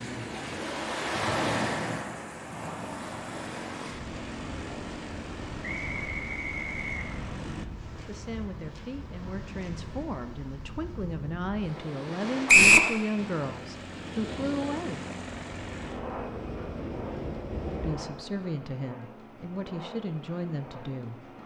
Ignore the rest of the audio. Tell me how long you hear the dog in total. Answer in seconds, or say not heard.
not heard.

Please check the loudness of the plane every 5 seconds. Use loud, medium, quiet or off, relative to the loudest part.
loud, loud, loud, loud, medium.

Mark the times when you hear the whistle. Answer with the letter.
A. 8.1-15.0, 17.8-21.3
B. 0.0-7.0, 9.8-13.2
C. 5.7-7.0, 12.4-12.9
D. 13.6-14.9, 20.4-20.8
C.